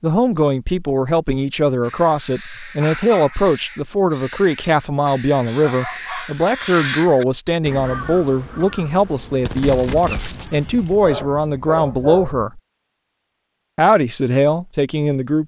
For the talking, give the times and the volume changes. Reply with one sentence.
You can hear the talking from 0.0 to 12.6 s, at a steady volume; and briefly from 13.8 to 15.4 s.